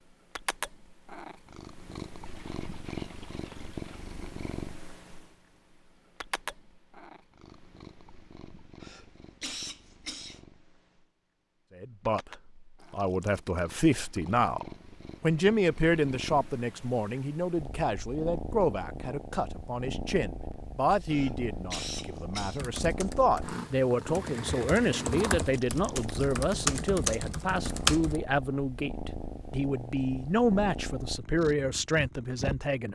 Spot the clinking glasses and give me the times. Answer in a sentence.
You can't hear the clinking glasses here.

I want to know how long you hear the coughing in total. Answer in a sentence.
The coughing can be heard for 3 seconds in total.